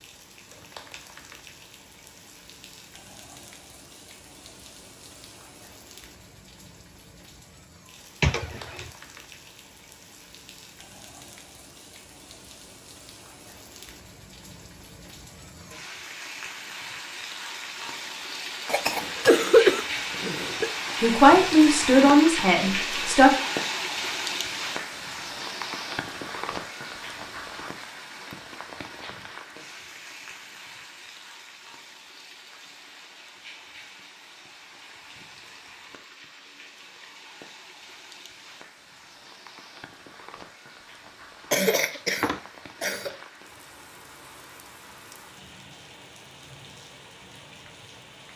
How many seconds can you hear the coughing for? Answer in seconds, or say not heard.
4 s.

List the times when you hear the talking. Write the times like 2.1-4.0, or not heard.
21.0-23.4.